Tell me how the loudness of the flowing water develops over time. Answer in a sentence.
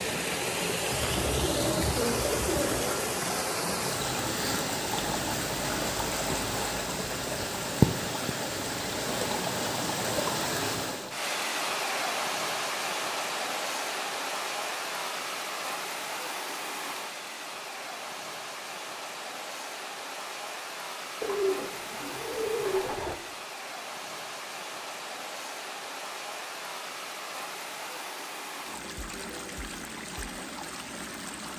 The loudness of the flowing water goes down.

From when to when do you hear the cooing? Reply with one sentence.
You can hear the cooing from 0.9 to 2.9 s and from 21.2 to 23.1 s.